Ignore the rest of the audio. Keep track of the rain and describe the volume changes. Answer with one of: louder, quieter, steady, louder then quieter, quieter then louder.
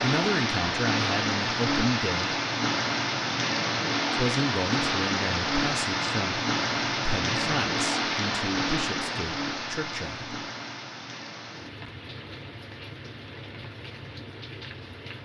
quieter.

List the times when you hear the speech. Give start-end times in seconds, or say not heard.
0.0-2.4, 4.2-10.3.